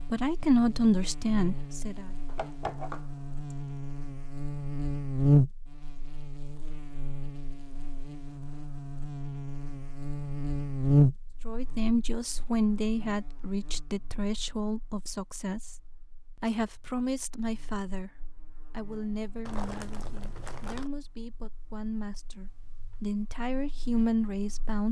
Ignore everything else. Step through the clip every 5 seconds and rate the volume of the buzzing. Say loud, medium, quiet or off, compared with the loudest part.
medium, loud, loud, quiet, quiet.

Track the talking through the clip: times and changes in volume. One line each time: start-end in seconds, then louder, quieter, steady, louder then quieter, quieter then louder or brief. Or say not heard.
0.0-2.1 brief
11.4-24.8 quieter then louder.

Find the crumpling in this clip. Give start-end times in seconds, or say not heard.
2.2-4.0, 19.4-20.9.